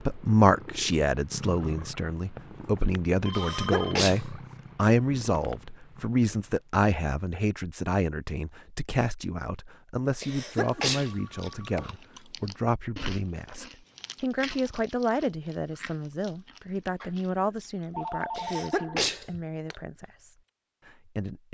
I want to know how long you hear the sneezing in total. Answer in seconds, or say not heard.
3 s.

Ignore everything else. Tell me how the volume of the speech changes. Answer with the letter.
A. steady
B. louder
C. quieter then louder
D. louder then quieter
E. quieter
E.